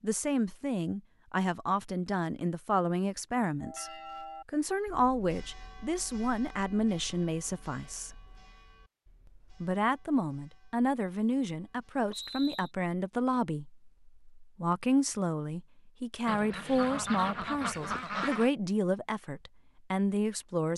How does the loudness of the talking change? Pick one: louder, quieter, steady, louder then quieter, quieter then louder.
steady.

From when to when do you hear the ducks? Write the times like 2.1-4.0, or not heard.
16.2-18.5.